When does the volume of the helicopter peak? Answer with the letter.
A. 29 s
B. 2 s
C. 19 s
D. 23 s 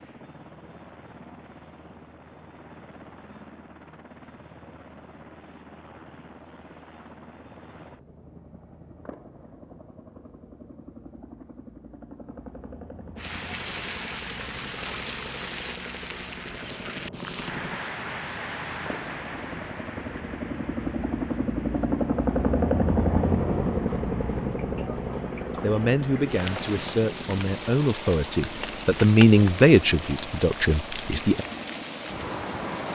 D.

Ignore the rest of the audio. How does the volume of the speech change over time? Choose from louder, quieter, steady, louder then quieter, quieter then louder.
louder then quieter.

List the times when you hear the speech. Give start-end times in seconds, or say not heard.
25.6-31.4.